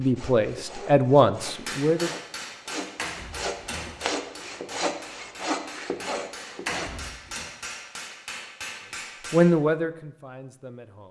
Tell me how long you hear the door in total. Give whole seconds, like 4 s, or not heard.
2 s.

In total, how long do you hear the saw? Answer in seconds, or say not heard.
7 s.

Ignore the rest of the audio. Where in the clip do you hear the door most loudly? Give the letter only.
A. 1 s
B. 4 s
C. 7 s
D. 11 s
C.